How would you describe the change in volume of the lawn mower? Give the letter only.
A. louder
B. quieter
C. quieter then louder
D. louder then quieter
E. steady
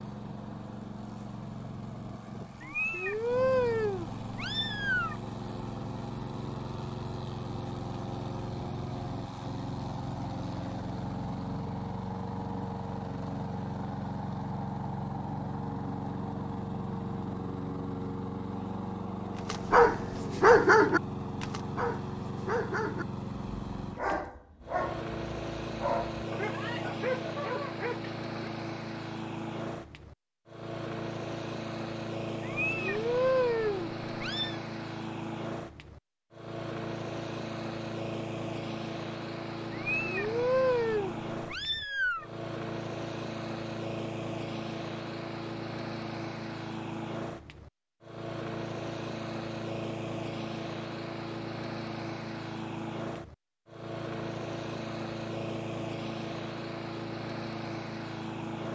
E.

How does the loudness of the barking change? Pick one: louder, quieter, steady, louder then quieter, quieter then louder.
quieter.